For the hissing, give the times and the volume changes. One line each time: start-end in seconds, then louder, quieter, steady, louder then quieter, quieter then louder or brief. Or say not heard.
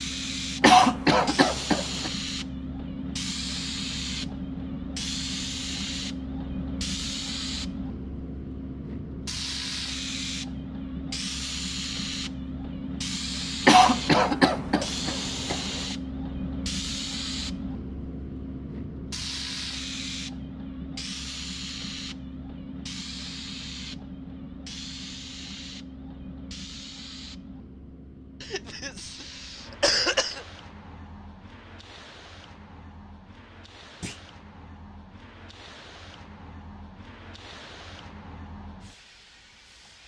0.0-40.0 quieter.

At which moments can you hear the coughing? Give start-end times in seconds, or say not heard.
0.6-2.1, 13.7-15.6, 28.4-30.4.